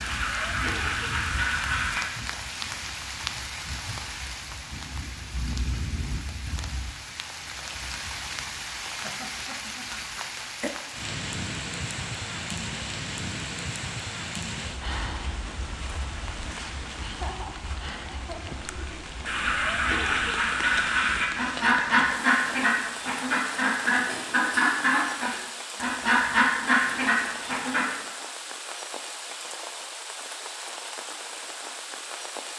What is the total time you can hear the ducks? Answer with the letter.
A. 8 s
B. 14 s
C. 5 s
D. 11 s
D.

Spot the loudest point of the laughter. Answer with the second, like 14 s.
17 s.